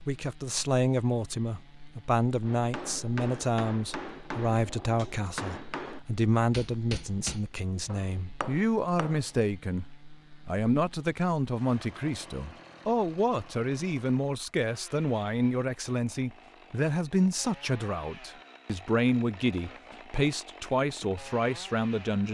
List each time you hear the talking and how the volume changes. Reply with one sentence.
The talking can be heard from 0.1 to 9.8 s, at a steady volume; and from 10.4 to 22.2 s, at a steady volume.